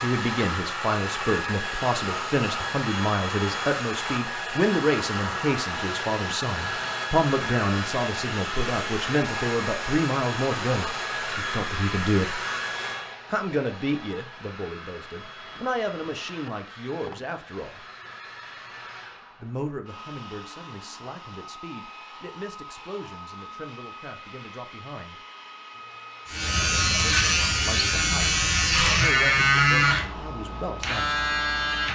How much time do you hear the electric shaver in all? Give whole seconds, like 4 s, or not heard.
6 s.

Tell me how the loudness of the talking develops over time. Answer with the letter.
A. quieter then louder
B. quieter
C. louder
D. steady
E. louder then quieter
B.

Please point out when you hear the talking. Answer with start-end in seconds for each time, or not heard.
0.0-12.4, 13.3-17.8, 19.4-25.2, 27.0-31.1.